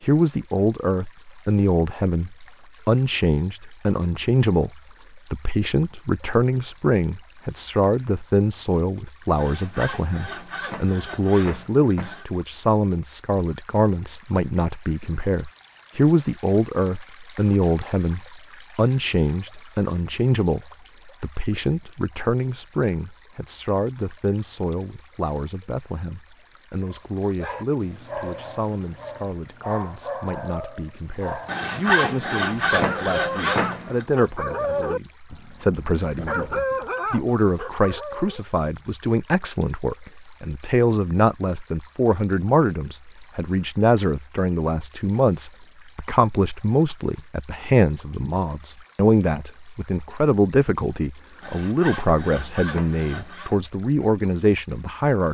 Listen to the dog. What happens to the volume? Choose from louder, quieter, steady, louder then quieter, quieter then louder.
louder.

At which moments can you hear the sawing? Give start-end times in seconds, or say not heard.
9.3-12.2, 31.4-34.0, 51.4-53.5.